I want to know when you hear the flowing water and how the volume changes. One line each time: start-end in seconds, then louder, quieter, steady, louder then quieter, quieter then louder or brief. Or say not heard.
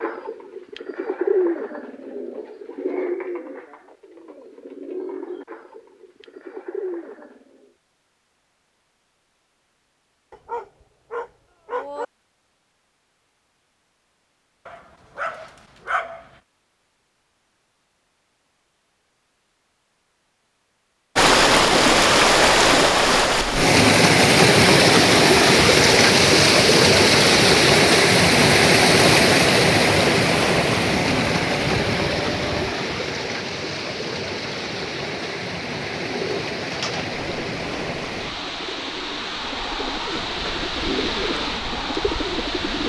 21.1-42.8 quieter.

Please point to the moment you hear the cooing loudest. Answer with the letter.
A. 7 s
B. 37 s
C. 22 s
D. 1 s
D.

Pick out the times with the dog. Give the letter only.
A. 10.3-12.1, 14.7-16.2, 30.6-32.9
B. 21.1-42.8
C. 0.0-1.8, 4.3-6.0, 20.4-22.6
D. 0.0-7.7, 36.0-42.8
A.